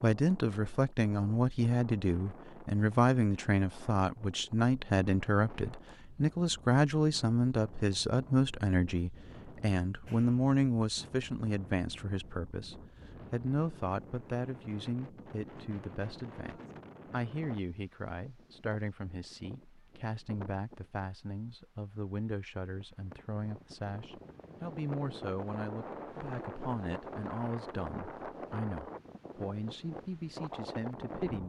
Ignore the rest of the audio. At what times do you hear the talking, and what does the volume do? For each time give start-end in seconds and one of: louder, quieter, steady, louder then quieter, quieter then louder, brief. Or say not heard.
0.0-31.4 quieter.